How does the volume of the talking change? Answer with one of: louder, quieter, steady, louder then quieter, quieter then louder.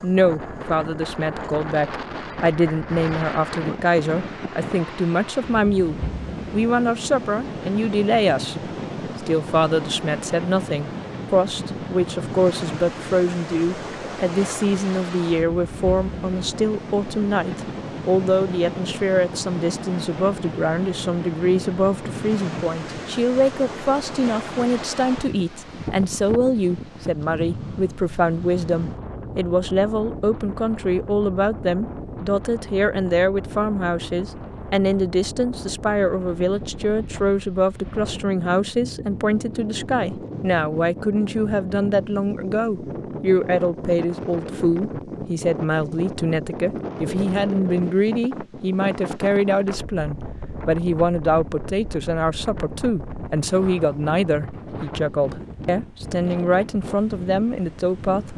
steady.